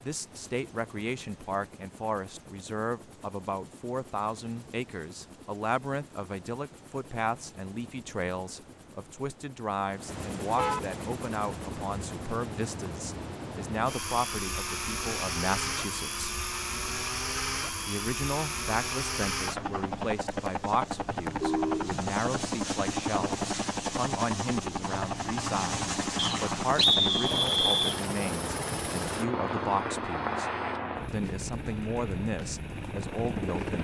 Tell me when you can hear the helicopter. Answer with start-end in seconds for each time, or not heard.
0.0-33.7.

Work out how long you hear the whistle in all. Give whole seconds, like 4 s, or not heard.
2 s.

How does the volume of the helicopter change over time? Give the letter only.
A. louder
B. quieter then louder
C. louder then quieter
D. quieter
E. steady
A.